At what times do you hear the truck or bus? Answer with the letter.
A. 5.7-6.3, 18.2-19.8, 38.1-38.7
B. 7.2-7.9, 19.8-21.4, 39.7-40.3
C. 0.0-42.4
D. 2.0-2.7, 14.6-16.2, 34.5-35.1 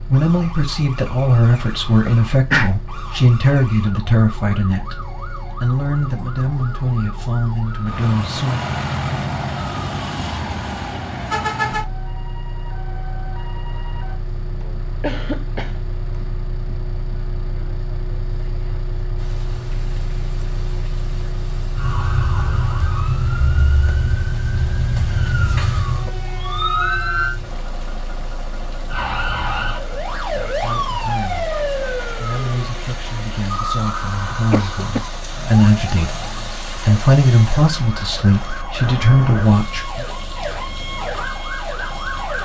C.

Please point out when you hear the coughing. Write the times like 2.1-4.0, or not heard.
2.0-2.7, 14.6-16.2, 34.5-35.1.